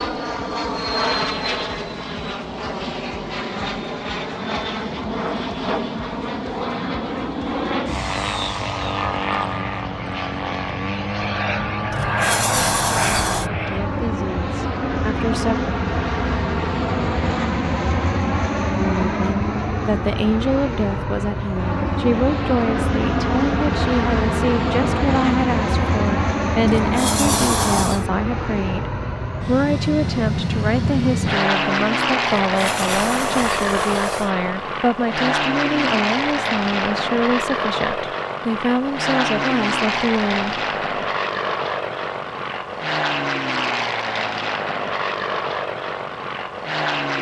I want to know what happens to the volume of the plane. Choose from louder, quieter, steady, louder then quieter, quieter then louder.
steady.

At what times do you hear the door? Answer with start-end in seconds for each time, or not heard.
11.9-13.5, 26.6-28.1, 32.5-34.3.